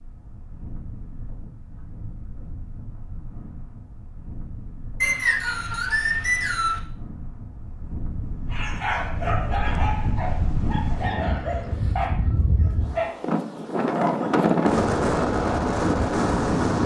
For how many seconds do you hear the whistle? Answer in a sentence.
You can hear the whistle for 2 seconds altogether.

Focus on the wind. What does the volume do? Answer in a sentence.
The loudness of the wind goes up.